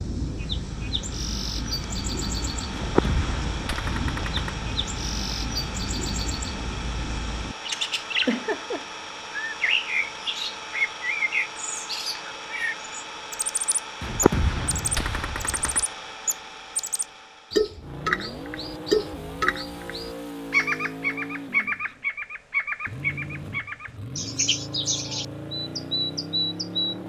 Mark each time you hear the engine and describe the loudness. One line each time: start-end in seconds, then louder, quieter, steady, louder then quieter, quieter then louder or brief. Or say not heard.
0.1-27.0 steady.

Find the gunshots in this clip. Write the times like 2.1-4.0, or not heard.
2.7-4.5, 14.0-15.8.